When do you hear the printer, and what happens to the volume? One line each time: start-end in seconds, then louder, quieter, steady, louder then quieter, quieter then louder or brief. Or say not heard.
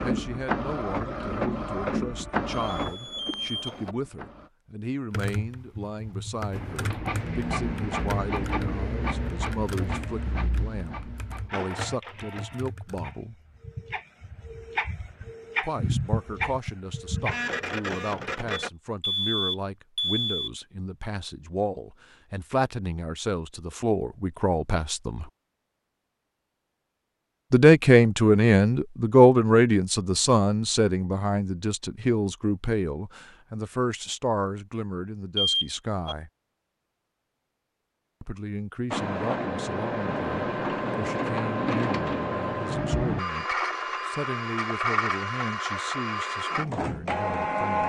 0.0-4.5 quieter
6.5-18.7 quieter then louder
38.9-47.8 steady.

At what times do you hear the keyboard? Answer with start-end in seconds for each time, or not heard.
5.1-13.2.